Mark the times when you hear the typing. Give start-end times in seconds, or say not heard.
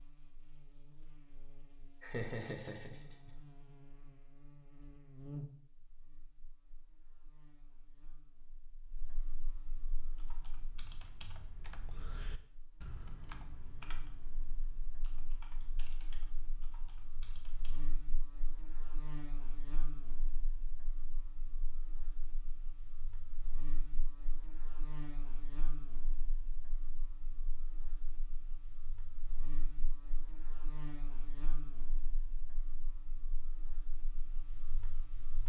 9.8-17.9.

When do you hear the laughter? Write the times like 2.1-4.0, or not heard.
2.0-3.3.